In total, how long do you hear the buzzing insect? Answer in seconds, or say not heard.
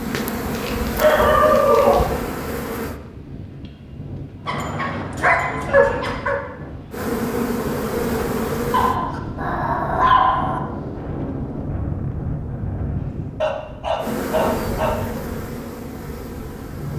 8 s.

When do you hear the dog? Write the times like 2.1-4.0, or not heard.
0.6-2.2, 4.5-6.4, 8.7-10.6, 13.4-15.0.